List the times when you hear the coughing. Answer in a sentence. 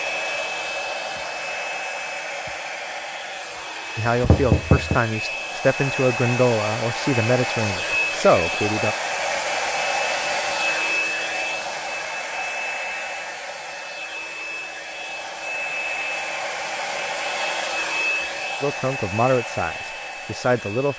The coughing can't be heard in this clip.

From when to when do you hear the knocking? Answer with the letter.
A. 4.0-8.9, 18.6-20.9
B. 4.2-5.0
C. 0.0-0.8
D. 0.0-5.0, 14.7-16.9
B.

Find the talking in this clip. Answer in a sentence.
The talking can be heard from 4.0 to 8.9 s and from 18.6 to 20.9 s.